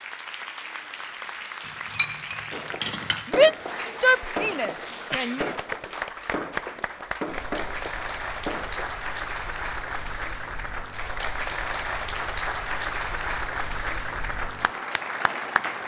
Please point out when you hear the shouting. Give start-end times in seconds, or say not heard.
3.2-5.4.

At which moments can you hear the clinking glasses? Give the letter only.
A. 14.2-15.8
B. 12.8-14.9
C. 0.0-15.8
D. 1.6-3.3
D.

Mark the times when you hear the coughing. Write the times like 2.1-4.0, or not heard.
not heard.